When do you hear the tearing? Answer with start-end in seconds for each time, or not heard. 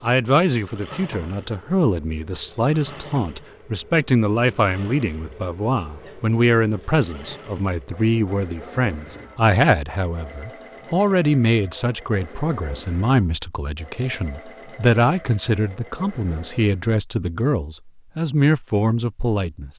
not heard.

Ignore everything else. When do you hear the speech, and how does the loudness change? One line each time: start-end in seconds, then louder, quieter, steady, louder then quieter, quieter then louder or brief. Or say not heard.
0.0-19.7 steady.